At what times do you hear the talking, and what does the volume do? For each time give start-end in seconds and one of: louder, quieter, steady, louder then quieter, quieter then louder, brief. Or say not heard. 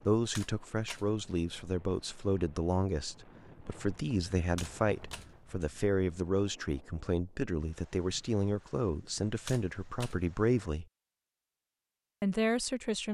0.1-10.8 steady
12.2-13.0 brief.